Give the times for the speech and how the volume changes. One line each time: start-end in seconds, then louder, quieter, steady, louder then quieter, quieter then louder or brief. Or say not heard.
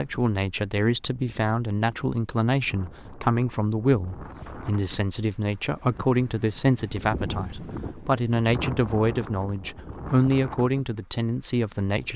0.0-12.1 steady.